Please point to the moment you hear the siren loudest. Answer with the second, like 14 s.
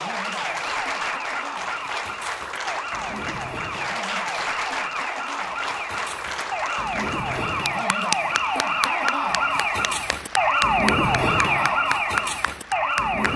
11 s.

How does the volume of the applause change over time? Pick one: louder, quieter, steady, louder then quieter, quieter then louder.
steady.